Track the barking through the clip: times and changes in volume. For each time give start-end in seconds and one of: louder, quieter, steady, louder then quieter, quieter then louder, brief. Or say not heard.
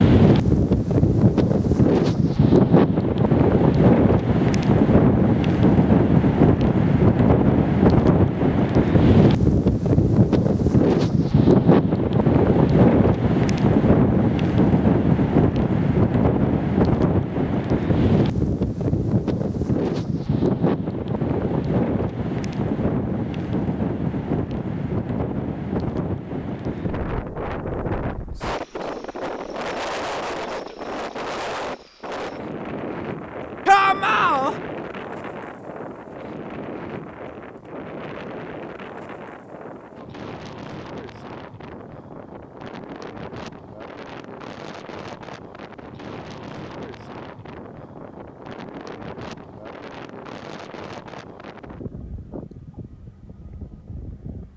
not heard.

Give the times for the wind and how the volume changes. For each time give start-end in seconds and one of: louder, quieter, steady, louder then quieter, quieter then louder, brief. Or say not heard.
0.0-54.5 quieter.